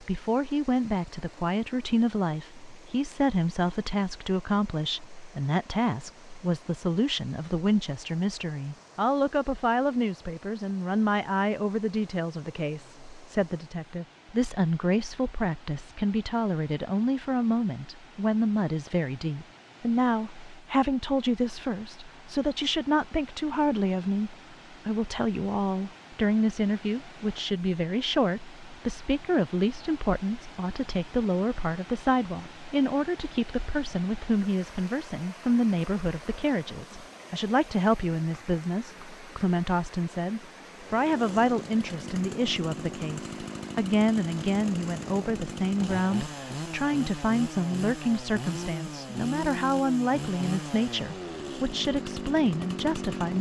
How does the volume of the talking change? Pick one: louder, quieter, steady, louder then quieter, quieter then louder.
steady.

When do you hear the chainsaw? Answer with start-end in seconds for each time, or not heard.
40.7-53.3.